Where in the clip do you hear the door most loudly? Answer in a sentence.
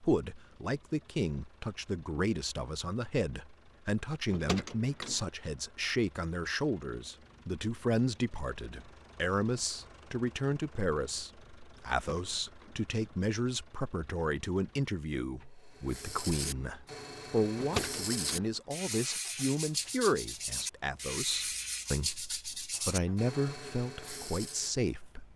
The loudest moment of the door is at 18 seconds.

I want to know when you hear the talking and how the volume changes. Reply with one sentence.
You can hear the talking from 0.0 to 25.3 s, at a steady volume.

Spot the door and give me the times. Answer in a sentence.
The door can be heard from 4.3 to 5.2 s, from 11.9 to 12.8 s and from 17.6 to 18.5 s.